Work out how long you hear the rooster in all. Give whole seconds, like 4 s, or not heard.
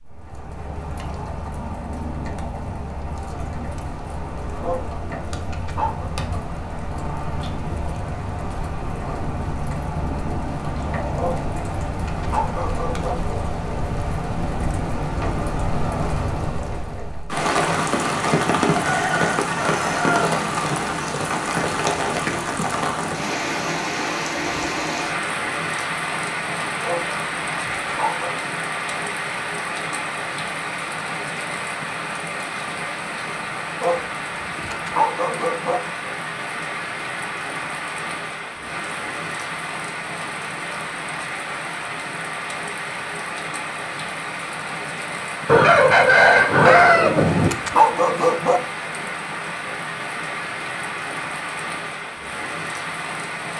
4 s.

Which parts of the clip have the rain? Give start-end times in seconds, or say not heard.
0.0-53.5.